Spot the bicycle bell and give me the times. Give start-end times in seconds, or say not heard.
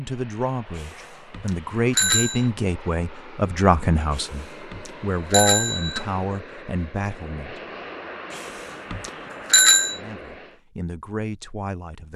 0.8-2.5, 4.1-6.0, 8.3-10.0.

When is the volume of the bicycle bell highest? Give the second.
10 s.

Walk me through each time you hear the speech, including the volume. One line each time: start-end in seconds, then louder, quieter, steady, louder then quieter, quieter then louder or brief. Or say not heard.
0.0-7.6 louder then quieter
9.9-12.1 brief.